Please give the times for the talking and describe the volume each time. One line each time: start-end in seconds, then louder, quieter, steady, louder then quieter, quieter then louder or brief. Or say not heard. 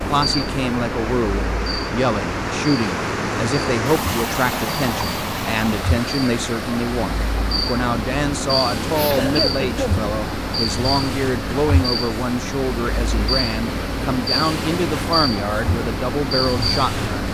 0.1-17.2 steady.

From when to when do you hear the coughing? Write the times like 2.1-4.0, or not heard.
8.9-10.0.